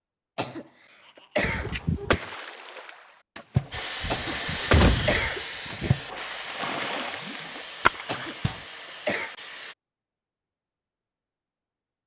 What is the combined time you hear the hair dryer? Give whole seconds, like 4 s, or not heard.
6 s.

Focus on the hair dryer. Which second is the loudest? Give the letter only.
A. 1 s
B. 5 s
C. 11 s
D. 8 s
B.